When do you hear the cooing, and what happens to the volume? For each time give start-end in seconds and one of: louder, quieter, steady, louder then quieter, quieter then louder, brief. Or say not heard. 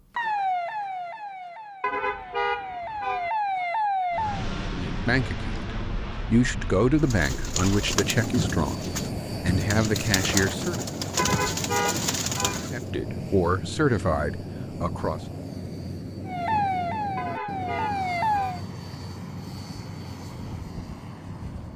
7.0-12.8 steady.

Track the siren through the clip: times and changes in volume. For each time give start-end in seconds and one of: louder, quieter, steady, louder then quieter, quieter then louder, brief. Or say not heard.
0.1-4.5 quieter then louder
16.2-18.6 brief.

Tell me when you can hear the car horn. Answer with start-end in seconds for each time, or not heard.
1.8-3.3, 11.2-12.7, 17.1-18.6.